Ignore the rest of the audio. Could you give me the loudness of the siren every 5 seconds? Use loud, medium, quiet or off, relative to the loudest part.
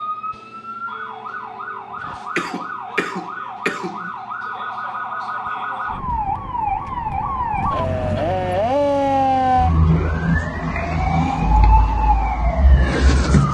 medium, loud, loud.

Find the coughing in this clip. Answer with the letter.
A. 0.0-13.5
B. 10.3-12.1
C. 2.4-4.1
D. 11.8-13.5
C.